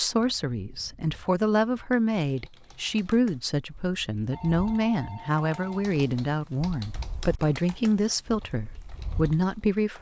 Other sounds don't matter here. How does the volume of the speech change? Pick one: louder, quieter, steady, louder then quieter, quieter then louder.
steady.